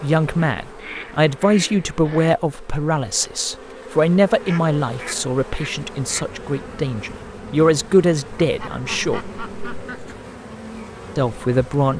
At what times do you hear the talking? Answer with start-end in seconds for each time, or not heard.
0.0-9.2, 11.2-11.9.